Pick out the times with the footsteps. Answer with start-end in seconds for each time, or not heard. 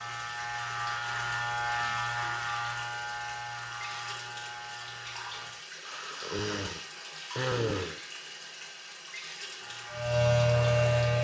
not heard.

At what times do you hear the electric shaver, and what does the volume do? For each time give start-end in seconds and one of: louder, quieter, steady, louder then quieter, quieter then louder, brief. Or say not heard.
0.0-5.5 quieter
9.6-11.1 brief.